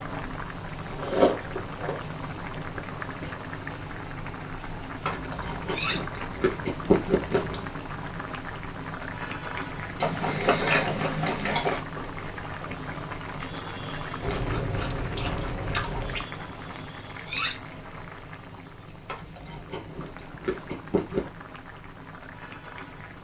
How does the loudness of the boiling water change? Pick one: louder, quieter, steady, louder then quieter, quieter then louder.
quieter.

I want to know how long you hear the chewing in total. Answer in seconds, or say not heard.
11 s.